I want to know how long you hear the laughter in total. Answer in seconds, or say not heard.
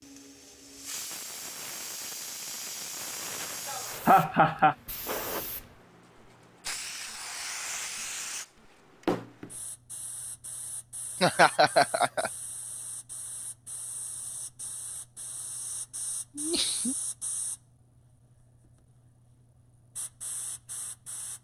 3 s.